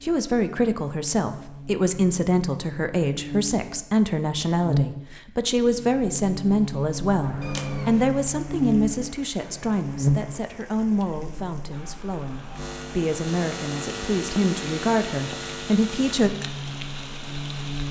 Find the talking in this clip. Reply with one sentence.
The talking can be heard from 0.0 to 16.3 s.